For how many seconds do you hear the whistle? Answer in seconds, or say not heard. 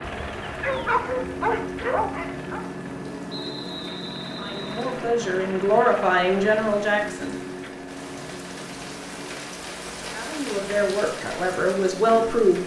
2 s.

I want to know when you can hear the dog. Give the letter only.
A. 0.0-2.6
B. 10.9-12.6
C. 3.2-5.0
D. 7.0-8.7
A.